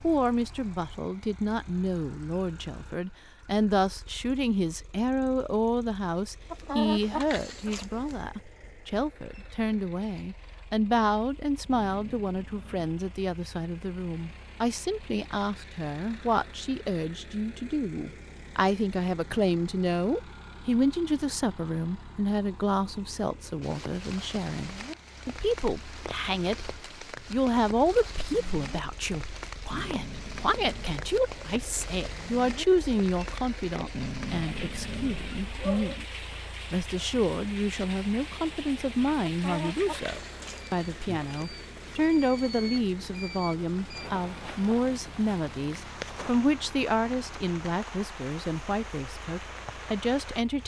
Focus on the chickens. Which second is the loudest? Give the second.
7 s.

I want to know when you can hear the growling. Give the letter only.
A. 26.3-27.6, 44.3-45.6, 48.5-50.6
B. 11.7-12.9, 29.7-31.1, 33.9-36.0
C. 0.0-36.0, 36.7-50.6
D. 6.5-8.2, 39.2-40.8
B.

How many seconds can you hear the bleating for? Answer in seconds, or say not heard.
not heard.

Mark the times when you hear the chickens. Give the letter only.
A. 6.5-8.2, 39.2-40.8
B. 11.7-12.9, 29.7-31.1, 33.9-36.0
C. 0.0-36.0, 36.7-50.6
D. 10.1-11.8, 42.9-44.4
A.